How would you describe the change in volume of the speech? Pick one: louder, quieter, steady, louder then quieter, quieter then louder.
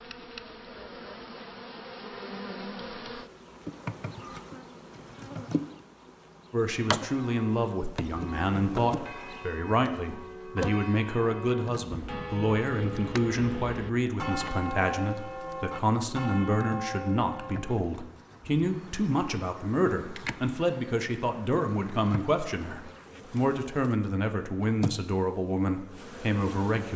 steady.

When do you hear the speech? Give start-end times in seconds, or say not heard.
6.5-26.9.